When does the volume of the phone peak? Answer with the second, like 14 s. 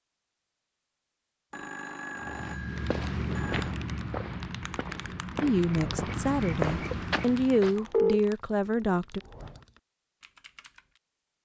8 s.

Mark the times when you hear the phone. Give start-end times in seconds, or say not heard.
1.5-3.7, 7.5-8.2.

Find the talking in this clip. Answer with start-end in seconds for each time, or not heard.
5.4-9.2.